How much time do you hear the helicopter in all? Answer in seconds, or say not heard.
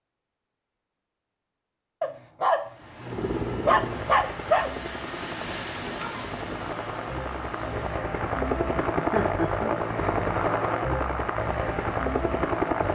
10 s.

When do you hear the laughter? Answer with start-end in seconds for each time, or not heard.
8.8-9.8.